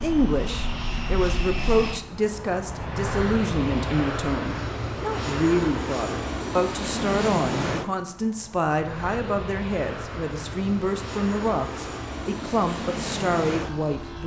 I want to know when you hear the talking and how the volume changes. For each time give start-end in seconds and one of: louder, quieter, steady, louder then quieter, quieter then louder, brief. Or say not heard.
0.0-14.2 steady.